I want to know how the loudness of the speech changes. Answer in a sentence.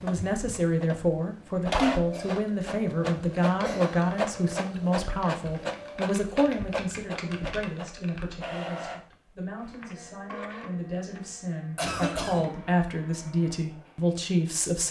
The volume of the speech goes down, then up.